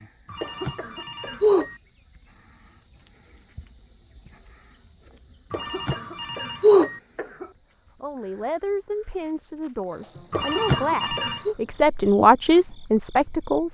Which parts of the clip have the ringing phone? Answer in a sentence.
The ringing phone can be heard from 0.3 to 1.8 s, from 5.5 to 7.0 s and from 10.3 to 11.6 s.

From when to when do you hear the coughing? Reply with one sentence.
The coughing can be heard from 0.4 to 1.4 s, from 5.5 to 7.5 s and from 10.3 to 11.6 s.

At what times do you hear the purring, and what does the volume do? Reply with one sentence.
The purring can't be heard in this clip.